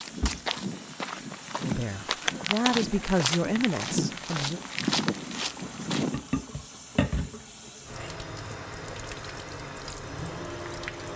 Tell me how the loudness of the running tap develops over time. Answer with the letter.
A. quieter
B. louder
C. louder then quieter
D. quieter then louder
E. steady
B.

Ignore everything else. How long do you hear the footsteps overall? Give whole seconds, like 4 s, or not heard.
6 s.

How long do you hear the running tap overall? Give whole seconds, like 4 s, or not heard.
11 s.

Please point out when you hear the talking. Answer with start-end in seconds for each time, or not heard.
1.6-4.6.